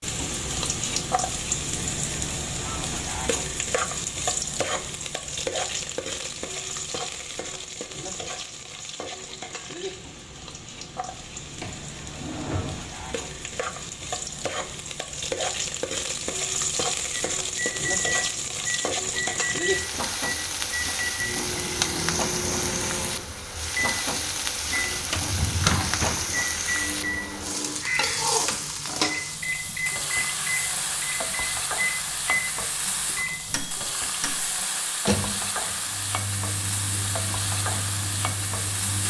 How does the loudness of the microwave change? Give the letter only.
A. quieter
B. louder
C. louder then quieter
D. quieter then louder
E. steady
E.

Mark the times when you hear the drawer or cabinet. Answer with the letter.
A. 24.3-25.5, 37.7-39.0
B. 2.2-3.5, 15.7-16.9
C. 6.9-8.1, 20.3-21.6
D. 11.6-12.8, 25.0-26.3
D.